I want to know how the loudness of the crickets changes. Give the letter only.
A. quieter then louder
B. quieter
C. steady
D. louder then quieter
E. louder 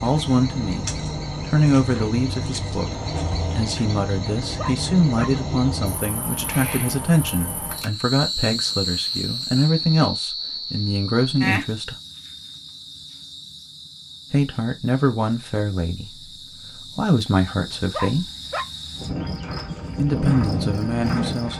A.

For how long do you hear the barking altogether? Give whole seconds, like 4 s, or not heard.
2 s.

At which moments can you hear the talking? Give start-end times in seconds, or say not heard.
0.0-11.9, 14.3-18.3, 19.9-21.5.